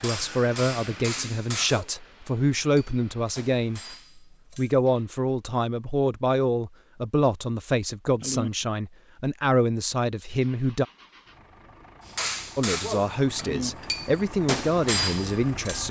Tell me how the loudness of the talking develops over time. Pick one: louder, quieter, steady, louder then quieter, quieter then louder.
steady.